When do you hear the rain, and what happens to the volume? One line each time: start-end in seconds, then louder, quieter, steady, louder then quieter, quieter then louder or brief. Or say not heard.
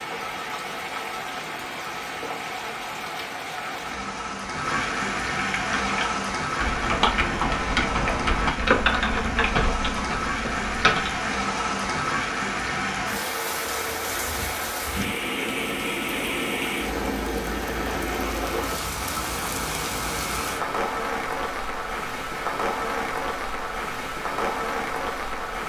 0.0-25.6 steady.